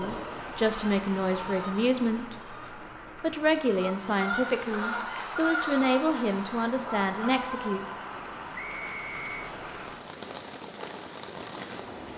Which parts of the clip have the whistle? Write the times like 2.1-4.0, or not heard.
8.6-9.5.